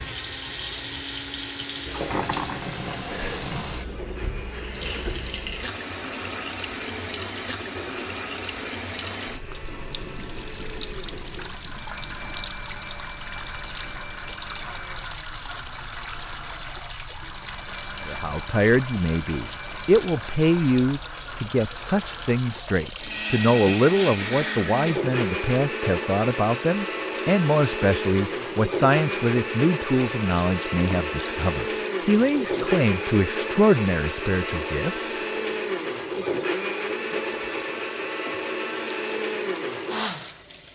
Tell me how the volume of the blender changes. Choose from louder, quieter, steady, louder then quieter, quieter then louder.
louder.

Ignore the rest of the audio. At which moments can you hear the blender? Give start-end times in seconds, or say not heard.
0.0-40.5.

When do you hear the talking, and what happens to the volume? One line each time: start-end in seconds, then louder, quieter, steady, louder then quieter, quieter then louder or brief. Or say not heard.
18.0-35.1 steady.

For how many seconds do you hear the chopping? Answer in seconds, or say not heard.
not heard.